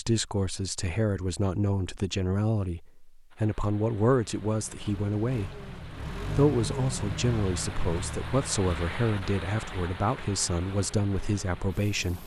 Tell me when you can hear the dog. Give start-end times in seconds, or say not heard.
not heard.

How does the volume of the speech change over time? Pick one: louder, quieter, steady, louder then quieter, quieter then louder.
steady.